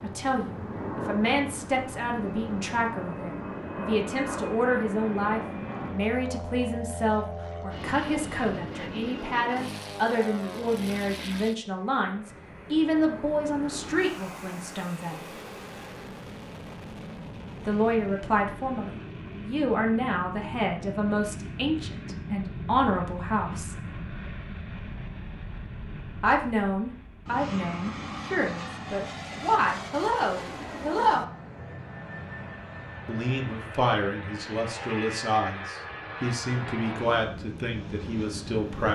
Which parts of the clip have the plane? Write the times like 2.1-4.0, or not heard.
0.0-38.9.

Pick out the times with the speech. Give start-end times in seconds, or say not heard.
0.0-15.3, 17.6-23.8, 26.2-31.2, 33.0-38.9.